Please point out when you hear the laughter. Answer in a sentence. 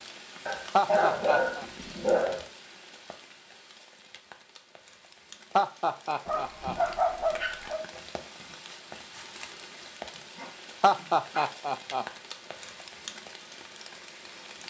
You can hear the laughter from 0.8 to 1.6 s, from 5.5 to 6.8 s and from 10.8 to 12.1 s.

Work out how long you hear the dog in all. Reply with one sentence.
The dog can be heard for 5 seconds in total.